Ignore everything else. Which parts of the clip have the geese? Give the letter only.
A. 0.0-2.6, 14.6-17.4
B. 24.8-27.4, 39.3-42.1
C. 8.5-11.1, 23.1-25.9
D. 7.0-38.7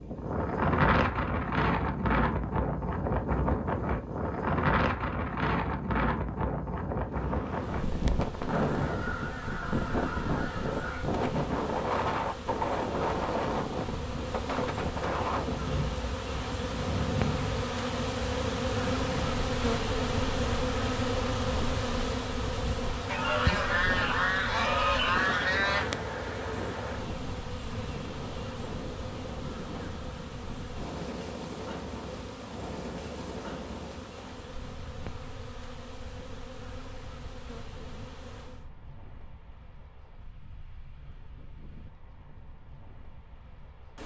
C.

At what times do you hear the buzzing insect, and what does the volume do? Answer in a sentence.
You can hear the buzzing insect from 7.0 to 38.7 s, getting louder then quieter.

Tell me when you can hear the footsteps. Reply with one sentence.
The footsteps can't be heard in this clip.